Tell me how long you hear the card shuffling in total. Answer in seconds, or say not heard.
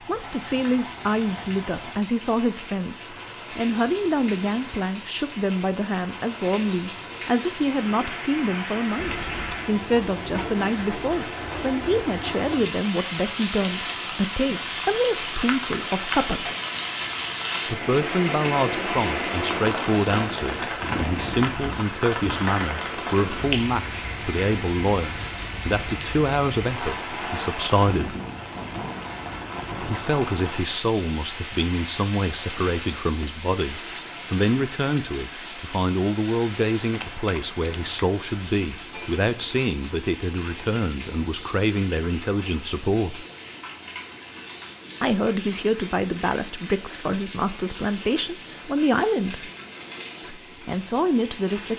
3 s.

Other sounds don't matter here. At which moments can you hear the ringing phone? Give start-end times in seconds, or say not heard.
not heard.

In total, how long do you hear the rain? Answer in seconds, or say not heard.
52 s.